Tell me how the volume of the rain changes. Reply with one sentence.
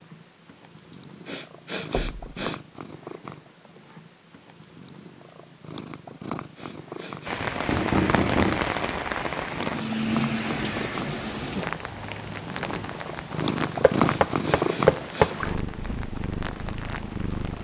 The volume of the rain goes down.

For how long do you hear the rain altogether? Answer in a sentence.
You can hear the rain for 10 seconds altogether.